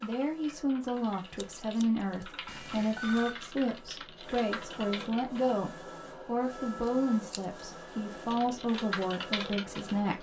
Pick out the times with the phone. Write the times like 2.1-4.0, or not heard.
2.5-3.4.